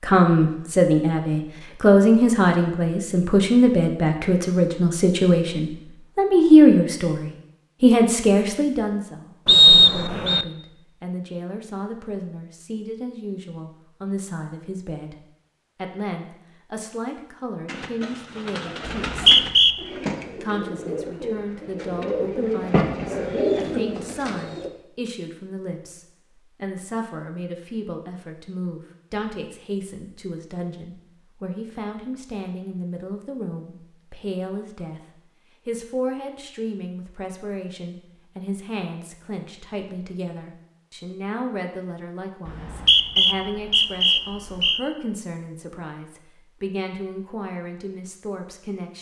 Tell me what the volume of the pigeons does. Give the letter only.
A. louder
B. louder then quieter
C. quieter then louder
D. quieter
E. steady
A.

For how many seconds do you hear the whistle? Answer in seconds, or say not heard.
4 s.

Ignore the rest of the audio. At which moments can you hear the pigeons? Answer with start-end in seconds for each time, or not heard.
17.6-24.7.